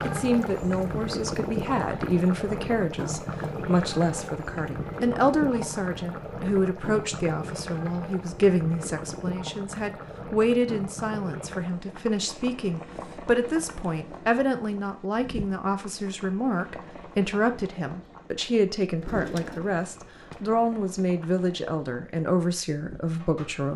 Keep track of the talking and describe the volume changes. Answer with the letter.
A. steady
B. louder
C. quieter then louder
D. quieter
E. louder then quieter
A.